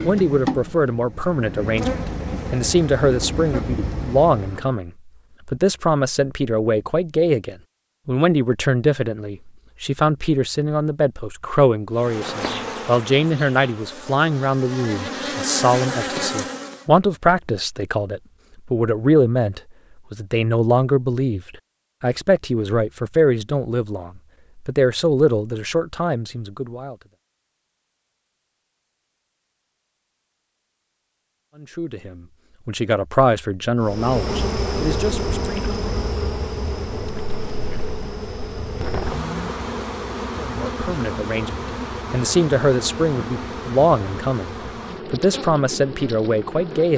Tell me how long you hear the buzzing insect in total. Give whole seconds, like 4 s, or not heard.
23 s.